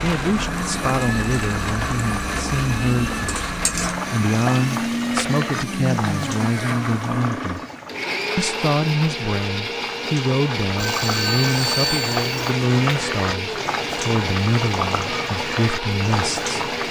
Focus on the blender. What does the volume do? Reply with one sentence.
The loudness of the blender stays about the same.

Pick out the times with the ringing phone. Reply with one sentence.
The ringing phone can be heard from 10.8 to 12.3 s.